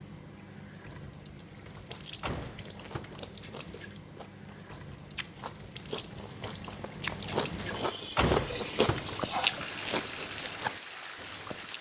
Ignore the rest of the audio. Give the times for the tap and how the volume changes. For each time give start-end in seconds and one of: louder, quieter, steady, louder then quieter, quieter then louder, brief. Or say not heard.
0.0-11.7 louder.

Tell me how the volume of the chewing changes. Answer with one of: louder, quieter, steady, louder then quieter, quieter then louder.
louder.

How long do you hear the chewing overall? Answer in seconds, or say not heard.
10 s.